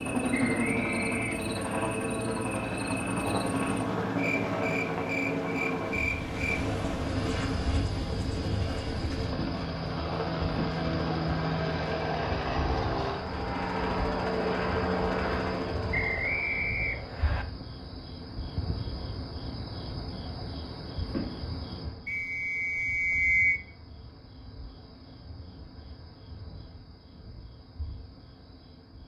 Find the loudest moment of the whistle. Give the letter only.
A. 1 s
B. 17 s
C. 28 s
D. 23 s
D.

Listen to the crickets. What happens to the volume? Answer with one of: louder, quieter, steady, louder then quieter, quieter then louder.
quieter.